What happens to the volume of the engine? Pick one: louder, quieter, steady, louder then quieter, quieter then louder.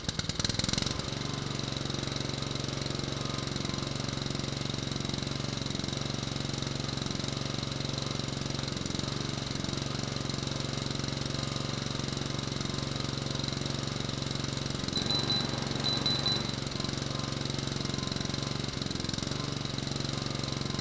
steady.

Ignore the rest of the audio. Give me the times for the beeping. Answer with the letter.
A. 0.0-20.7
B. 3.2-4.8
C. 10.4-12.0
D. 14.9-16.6
D.